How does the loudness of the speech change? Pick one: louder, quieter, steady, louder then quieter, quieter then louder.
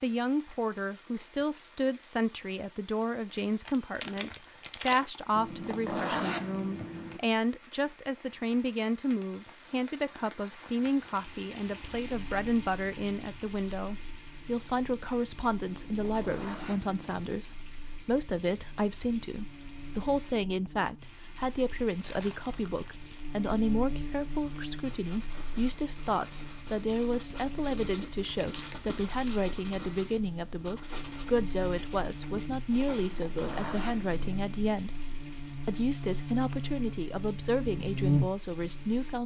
steady.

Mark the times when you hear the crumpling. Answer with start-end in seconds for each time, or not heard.
3.6-5.0, 21.8-23.2, 28.2-29.4.